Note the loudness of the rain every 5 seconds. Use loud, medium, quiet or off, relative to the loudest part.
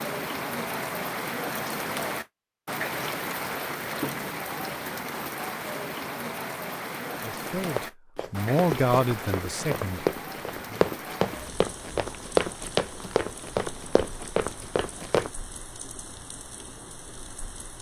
loud, loud, medium, quiet.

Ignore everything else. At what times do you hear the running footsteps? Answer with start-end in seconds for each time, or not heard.
7.5-15.3.